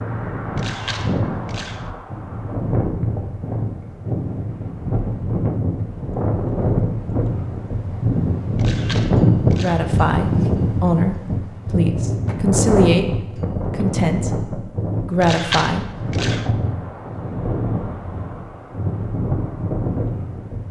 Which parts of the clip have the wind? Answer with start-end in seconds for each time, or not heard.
0.0-20.6.